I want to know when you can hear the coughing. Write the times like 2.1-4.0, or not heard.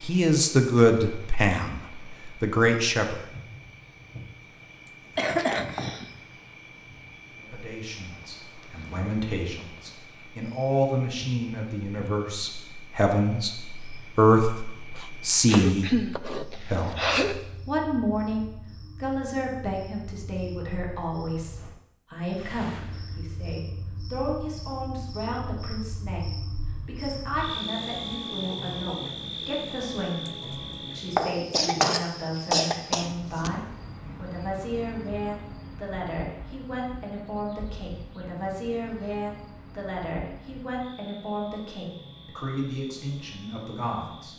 5.2-6.1, 15.4-17.4, 31.5-33.5.